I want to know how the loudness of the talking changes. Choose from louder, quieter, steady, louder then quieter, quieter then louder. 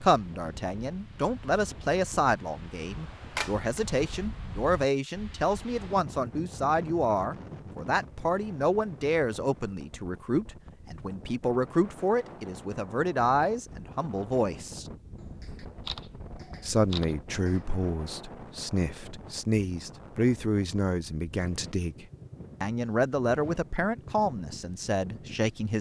steady.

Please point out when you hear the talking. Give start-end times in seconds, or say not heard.
0.0-14.8, 16.6-25.7.